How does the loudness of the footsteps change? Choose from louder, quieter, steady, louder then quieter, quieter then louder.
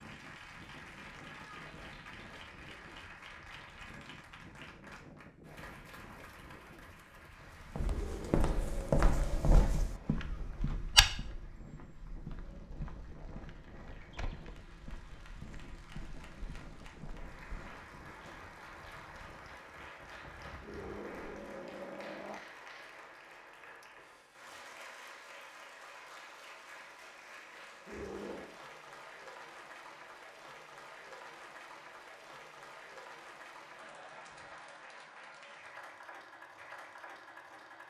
quieter.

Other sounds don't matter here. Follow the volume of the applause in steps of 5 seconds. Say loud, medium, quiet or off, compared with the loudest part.
loud, medium, quiet, loud, loud, loud, loud, loud.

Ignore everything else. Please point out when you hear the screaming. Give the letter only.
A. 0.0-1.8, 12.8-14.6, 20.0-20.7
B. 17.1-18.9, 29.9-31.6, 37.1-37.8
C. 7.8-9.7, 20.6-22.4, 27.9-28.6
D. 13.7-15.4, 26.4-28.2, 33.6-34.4
C.